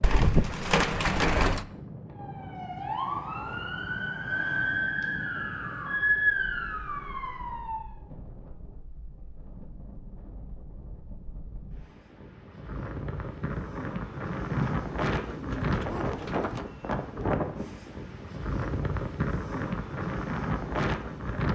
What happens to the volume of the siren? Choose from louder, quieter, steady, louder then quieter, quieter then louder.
louder then quieter.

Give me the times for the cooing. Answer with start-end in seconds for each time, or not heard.
0.0-1.6, 14.5-16.6.